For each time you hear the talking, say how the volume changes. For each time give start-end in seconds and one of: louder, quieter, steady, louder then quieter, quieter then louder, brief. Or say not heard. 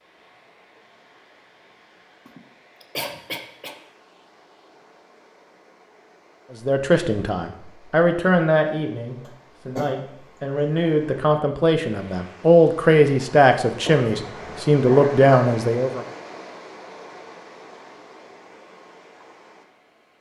6.7-16.1 quieter then louder.